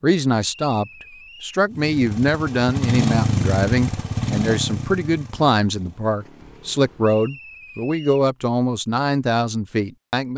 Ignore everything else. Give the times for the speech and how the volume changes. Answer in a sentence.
The speech can be heard from 0.0 to 10.3 s, at a steady volume.